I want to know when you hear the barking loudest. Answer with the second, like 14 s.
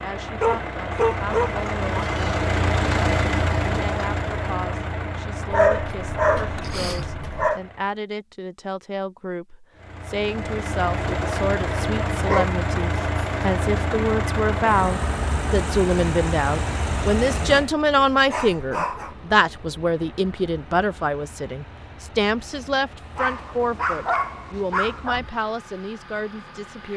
6 s.